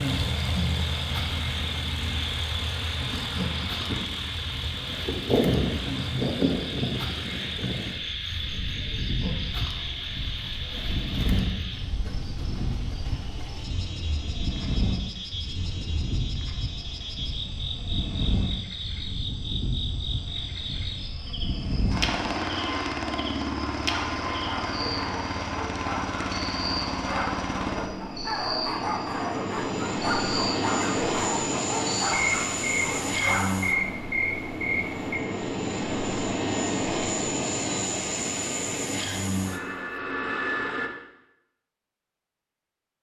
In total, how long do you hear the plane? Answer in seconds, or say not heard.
41 s.